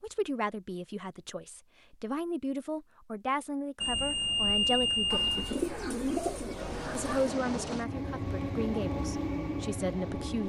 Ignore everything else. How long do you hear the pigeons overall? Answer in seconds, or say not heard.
2 s.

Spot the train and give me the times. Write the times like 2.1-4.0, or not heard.
6.5-10.4.